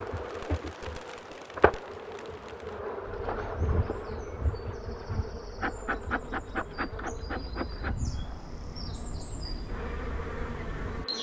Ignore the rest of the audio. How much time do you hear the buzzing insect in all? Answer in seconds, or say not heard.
11 s.